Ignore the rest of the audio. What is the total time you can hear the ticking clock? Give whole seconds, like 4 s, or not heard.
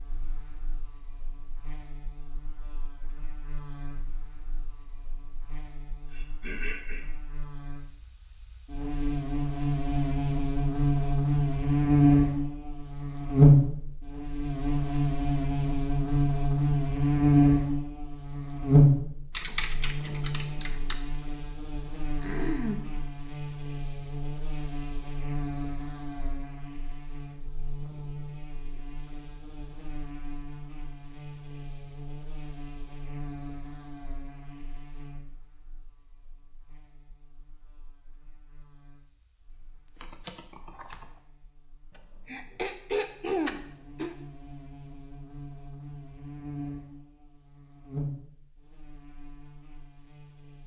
not heard.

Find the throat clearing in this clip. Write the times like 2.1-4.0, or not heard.
6.1-7.0, 22.2-22.9, 41.9-44.1.